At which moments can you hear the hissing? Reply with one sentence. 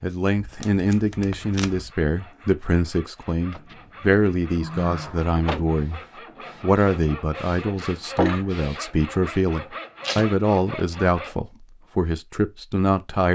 The hissing can be heard from 5.0 to 8.8 s.